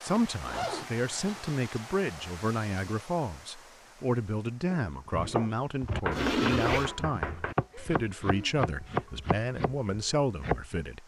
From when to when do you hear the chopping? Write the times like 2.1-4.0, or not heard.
4.7-10.8.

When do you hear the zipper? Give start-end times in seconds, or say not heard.
0.1-1.6, 6.1-6.9.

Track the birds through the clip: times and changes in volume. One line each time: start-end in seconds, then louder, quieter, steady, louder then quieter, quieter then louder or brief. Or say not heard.
not heard.